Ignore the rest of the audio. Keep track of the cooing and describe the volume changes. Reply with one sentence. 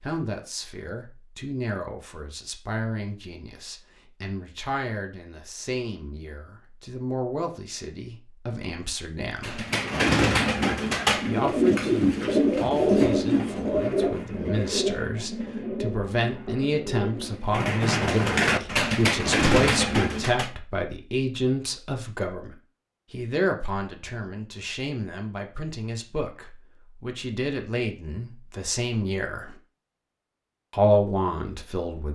The loudness of the cooing goes down, then up.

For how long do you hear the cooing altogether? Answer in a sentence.
The cooing can be heard for 11 seconds in total.